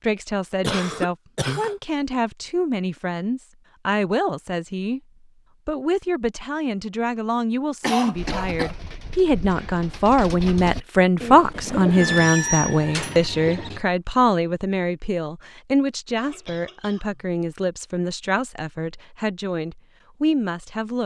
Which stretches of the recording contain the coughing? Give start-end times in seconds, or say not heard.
0.6-1.8, 7.8-8.8, 16.1-17.2.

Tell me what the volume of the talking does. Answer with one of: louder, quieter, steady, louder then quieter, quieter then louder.
louder then quieter.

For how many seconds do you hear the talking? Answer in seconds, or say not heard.
20 s.